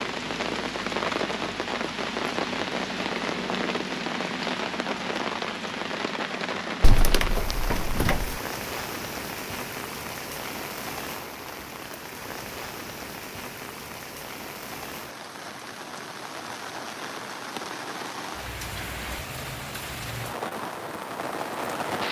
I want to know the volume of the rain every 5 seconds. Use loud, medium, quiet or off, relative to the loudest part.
loud, loud, medium, medium, loud.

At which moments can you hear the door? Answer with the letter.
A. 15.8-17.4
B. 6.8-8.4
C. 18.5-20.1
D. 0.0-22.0
B.